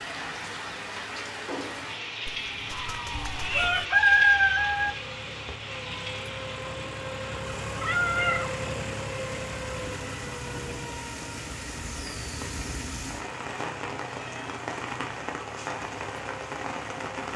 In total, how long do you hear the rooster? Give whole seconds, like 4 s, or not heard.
2 s.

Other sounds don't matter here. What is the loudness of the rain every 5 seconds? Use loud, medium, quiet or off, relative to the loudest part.
loud, medium, loud, loud.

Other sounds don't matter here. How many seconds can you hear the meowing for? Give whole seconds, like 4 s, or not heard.
3 s.